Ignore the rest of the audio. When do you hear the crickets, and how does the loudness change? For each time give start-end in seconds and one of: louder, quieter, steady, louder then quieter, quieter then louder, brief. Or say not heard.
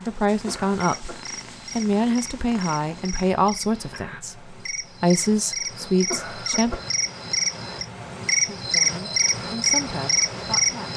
0.0-10.9 louder.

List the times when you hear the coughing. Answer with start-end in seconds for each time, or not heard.
0.1-1.3, 5.8-6.9.